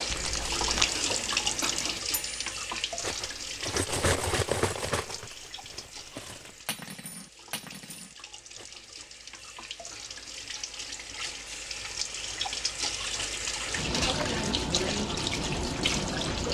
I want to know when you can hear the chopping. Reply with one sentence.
You can't hear the chopping here.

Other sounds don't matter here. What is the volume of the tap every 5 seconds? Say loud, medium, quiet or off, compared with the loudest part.
loud, quiet, loud, loud.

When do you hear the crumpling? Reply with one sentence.
You can hear the crumpling from 0.1 to 0.8 s.